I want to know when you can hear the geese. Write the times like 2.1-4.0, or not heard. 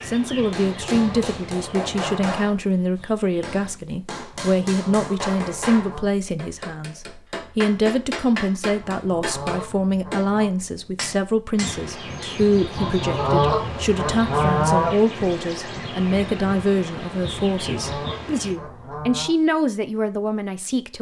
0.6-2.5, 4.4-6.1, 8.8-10.5, 12.8-14.9, 17.4-19.3.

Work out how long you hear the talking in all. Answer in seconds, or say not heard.
21 s.